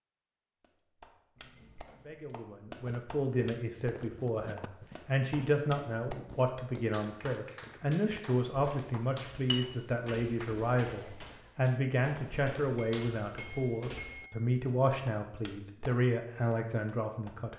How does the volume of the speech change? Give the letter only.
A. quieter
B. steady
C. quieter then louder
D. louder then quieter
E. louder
B.